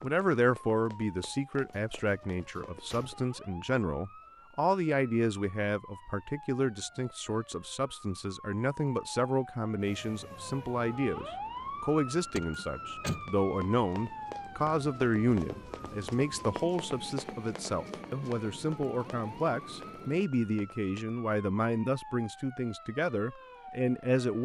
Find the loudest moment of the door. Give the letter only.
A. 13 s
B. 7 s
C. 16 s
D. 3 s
A.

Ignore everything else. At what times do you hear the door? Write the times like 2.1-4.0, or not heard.
1.7-3.2, 12.3-13.2.